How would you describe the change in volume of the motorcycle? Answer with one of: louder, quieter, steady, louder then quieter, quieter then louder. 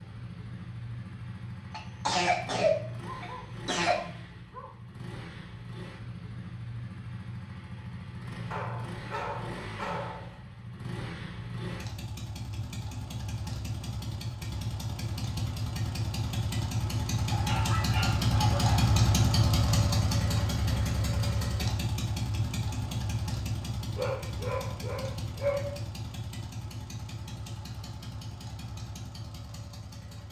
louder then quieter.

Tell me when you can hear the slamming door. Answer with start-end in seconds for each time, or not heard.
not heard.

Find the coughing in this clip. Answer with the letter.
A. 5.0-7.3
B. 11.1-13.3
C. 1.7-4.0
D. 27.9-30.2
C.